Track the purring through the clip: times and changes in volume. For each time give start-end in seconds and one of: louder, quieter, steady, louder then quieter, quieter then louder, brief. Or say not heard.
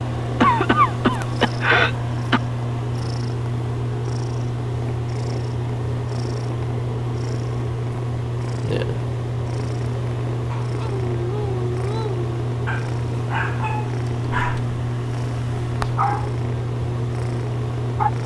0.0-18.2 steady.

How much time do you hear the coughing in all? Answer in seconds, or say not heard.
2 s.